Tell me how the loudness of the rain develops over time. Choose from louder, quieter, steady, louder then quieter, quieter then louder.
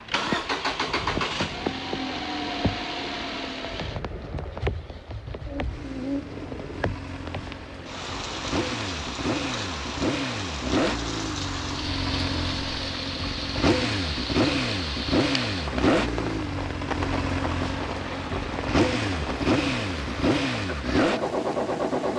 steady.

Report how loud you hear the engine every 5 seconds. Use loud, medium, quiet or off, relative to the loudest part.
medium, medium, loud, loud, loud.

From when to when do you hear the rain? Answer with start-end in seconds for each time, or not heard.
0.1-22.1.